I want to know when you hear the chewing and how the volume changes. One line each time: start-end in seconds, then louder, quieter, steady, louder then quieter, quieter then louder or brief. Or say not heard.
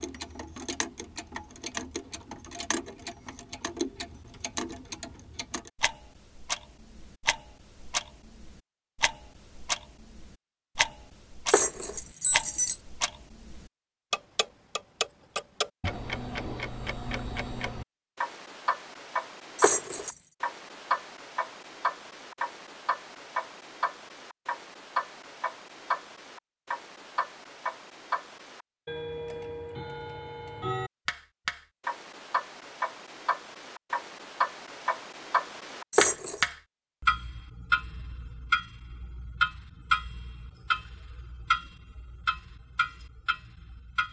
not heard.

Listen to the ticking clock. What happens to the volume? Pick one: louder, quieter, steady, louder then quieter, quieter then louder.
louder.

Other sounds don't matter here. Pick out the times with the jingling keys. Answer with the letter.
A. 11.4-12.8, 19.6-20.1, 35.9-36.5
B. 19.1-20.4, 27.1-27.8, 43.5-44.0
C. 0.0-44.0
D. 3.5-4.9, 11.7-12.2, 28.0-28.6
A.